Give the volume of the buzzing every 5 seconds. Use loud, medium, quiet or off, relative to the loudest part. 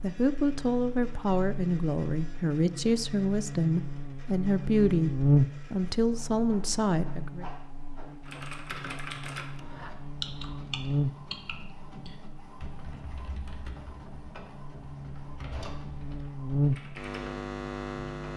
medium, loud, medium, loud.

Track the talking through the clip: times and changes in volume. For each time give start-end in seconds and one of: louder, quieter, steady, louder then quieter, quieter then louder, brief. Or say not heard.
0.0-7.5 steady.